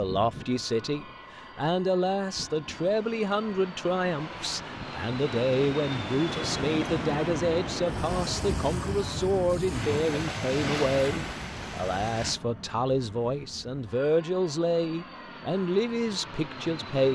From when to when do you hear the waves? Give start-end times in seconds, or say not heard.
0.0-12.3.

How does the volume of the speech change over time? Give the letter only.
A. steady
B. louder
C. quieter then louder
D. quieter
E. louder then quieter
A.